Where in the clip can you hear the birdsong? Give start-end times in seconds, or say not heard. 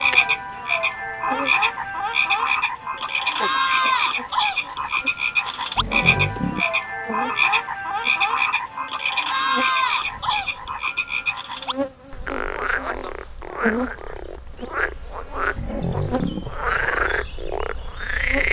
not heard.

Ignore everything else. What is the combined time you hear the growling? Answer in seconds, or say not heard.
2 s.